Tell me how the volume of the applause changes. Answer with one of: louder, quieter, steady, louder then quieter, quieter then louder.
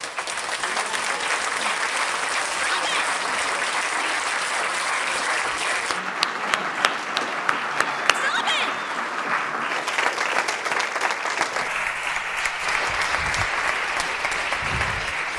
steady.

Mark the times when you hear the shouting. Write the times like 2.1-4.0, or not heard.
2.6-3.1, 8.1-8.8.